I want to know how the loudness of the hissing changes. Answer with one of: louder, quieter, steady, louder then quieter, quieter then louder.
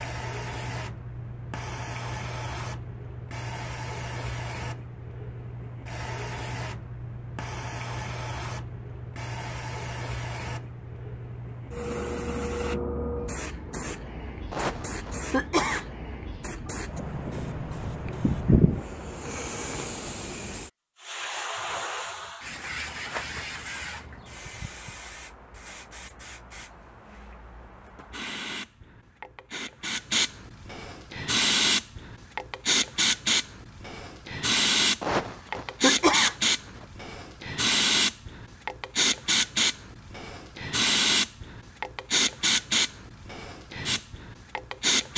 louder.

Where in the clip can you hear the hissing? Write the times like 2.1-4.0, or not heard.
0.0-45.1.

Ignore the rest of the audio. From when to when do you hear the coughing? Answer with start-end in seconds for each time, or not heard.
14.5-15.8, 35.0-36.4.